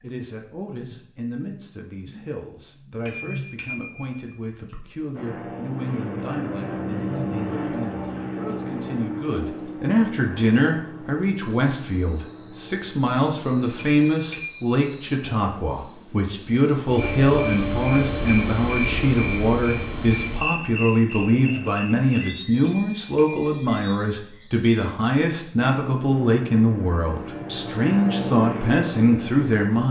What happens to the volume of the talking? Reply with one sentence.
The volume of the talking goes up.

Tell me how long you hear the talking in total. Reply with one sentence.
You can hear the talking for 30 seconds altogether.